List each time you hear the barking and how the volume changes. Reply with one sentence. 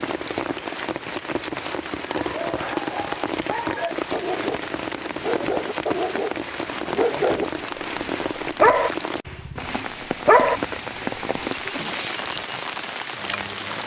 You can hear the barking from 2.0 to 11.6 s, getting louder.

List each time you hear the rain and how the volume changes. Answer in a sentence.
You can hear the rain from 0.0 to 13.8 s, at a steady volume.